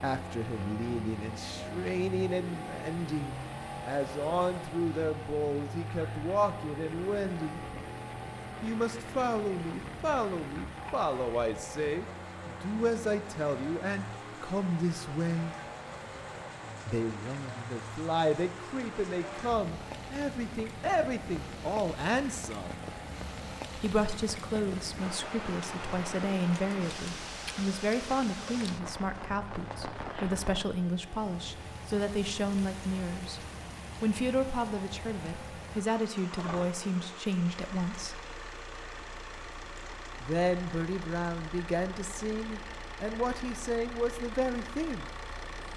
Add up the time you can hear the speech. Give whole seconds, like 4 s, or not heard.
40 s.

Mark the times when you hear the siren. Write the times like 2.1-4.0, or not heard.
not heard.